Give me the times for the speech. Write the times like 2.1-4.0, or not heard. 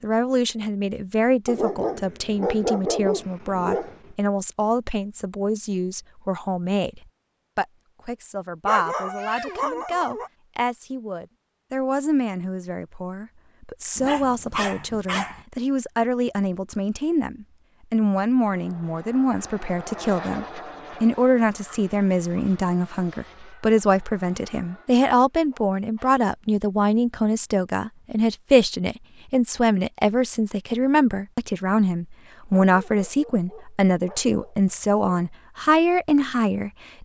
0.0-37.0.